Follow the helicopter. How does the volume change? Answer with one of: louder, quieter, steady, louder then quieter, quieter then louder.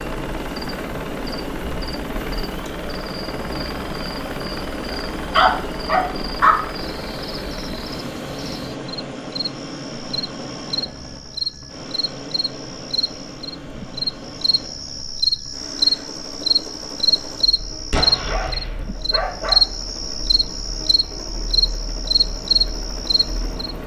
quieter.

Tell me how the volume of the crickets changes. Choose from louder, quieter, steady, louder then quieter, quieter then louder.
louder.